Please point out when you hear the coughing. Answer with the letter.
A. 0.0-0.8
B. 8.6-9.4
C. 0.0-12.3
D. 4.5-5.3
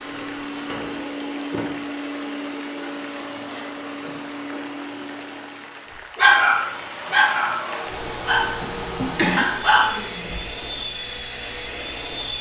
B.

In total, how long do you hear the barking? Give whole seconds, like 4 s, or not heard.
4 s.